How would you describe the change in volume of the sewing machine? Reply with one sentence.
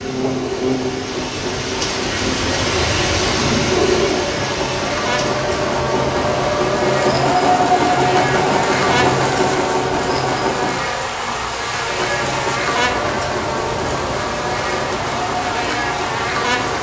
The loudness of the sewing machine goes up, then down.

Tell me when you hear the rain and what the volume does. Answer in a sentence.
The rain can be heard from 0.0 to 16.7 s, getting quieter.